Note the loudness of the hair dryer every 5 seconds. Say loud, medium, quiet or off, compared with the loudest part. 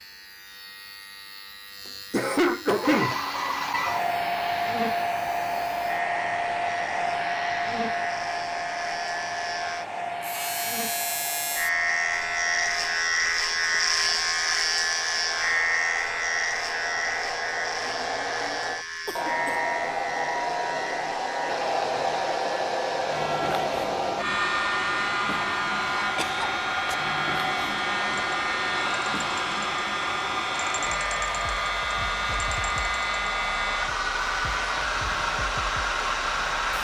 loud, loud, medium, medium, loud, loud, loud, loud.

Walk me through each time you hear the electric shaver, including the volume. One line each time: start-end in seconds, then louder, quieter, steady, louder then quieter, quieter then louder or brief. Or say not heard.
0.0-36.7 louder then quieter.